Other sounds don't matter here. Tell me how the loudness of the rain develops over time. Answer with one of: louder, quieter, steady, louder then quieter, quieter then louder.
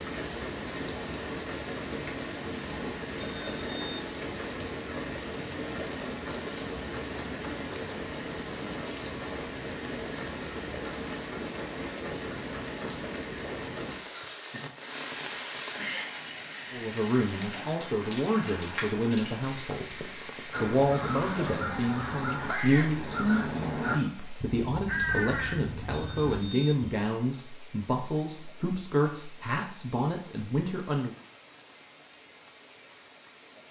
quieter.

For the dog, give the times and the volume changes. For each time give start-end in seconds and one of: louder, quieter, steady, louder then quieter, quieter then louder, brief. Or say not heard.
not heard.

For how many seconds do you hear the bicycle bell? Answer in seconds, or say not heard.
2 s.